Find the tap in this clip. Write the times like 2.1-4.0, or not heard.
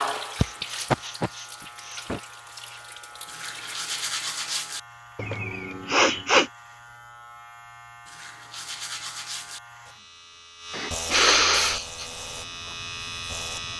0.0-4.7.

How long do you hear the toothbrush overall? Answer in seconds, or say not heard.
3 s.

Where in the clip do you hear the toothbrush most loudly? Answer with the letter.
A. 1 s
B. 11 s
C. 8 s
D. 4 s
D.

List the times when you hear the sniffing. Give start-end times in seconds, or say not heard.
0.4-2.2, 5.2-6.5, 10.7-12.1.